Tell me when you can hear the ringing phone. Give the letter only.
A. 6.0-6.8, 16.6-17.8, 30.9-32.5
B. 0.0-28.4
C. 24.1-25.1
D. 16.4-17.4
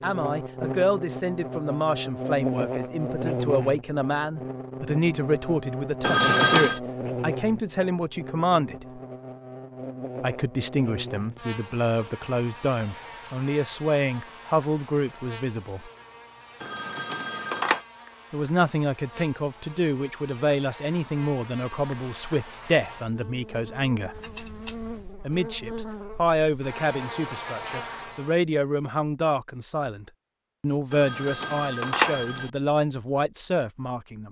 A.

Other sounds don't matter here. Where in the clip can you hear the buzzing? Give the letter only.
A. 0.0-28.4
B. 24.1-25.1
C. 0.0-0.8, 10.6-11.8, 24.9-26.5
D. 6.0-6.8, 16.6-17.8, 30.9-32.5
A.